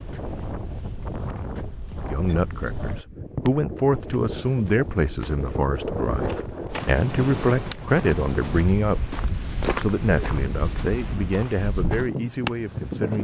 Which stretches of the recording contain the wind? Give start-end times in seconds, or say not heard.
0.0-13.2.